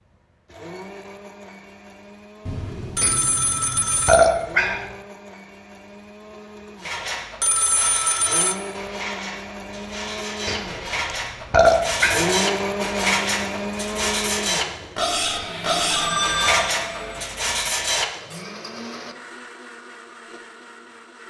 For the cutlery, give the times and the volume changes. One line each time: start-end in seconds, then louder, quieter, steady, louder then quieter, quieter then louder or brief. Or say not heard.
6.8-18.4 louder.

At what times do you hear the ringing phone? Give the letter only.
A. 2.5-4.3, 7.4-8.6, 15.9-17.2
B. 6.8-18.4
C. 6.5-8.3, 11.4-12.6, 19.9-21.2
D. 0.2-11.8
A.